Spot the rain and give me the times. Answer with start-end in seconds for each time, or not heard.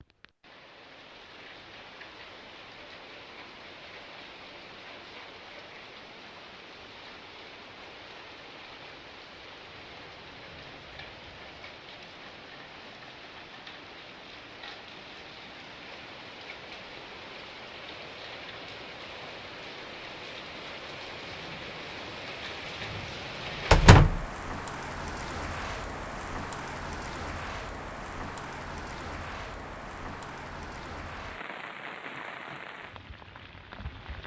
0.0-34.2.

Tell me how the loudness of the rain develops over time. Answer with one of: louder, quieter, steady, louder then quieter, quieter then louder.
louder.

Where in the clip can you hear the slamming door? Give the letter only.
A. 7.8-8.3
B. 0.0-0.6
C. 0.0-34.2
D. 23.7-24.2
D.